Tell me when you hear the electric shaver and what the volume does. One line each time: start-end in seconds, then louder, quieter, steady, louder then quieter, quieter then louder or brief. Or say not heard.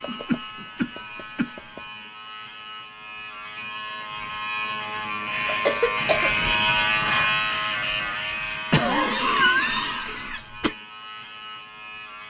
0.0-12.2 louder then quieter.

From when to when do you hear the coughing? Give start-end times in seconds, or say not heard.
0.0-1.8, 5.5-6.5, 8.7-10.8.